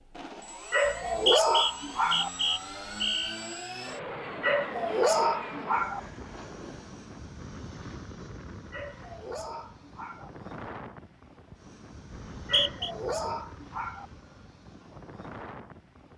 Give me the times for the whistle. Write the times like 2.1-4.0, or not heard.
0.8-3.4, 12.1-12.9.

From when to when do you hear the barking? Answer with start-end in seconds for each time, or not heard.
0.7-2.3, 4.4-6.0, 8.7-10.3, 12.4-14.1.